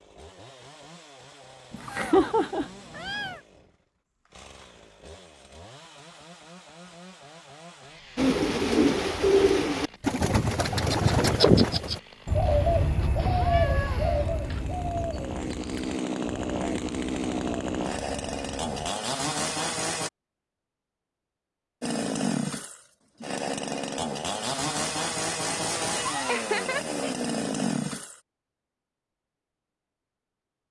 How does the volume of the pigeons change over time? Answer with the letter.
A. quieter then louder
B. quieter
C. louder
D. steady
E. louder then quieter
B.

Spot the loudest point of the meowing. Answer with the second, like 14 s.
2 s.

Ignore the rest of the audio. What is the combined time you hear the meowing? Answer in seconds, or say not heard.
5 s.